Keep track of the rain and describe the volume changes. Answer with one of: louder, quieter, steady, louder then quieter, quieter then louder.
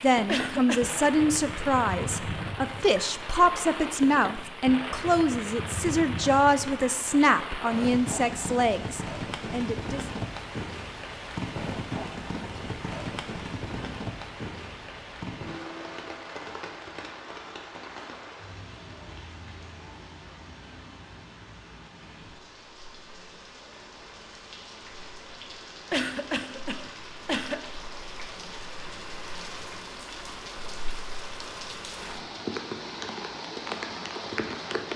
quieter then louder.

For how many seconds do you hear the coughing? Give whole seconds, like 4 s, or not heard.
2 s.